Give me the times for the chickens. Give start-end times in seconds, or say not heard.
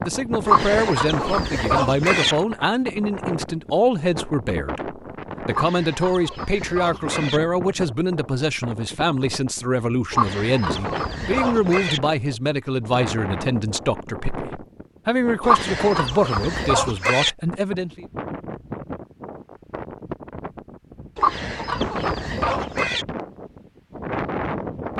0.5-2.4, 5.5-7.4, 10.1-12.0, 15.4-17.3, 21.1-23.1.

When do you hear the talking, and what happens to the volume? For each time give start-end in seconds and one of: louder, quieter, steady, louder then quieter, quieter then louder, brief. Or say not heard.
0.0-18.1 steady.